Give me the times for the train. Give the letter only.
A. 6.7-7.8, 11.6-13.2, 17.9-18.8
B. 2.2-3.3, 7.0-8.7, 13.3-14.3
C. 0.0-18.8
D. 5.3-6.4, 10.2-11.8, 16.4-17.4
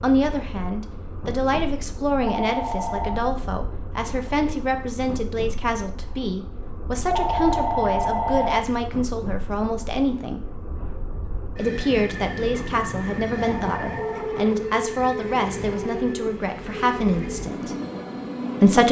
C.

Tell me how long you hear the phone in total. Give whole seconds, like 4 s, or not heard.
4 s.